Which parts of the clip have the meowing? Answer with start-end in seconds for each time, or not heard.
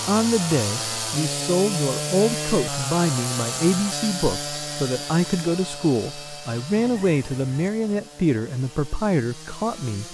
not heard.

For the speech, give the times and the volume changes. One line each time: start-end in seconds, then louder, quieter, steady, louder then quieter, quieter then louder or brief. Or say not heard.
0.1-10.0 steady.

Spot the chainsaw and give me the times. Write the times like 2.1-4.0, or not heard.
0.0-10.0.